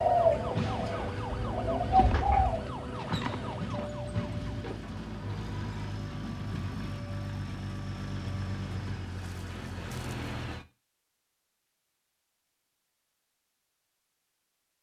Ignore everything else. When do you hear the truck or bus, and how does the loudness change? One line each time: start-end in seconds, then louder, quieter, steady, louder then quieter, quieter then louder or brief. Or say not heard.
0.0-10.7 steady.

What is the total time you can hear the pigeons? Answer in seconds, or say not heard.
3 s.